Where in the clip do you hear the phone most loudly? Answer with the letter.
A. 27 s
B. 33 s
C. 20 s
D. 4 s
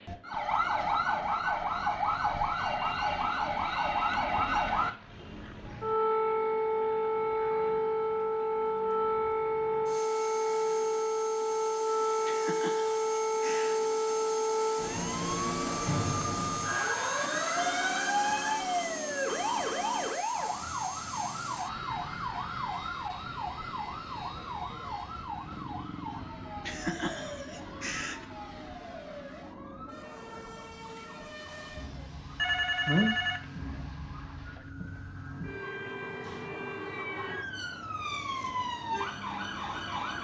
B.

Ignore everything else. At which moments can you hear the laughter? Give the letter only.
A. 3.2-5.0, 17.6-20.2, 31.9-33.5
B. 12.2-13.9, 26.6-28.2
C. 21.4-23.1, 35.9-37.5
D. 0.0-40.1
B.